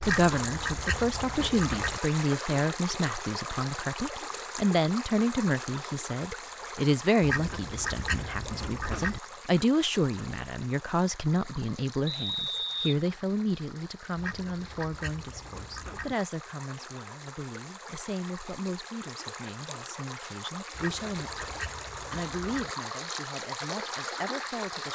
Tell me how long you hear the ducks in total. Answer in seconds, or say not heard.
8 s.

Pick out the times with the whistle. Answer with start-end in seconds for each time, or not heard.
12.1-13.0.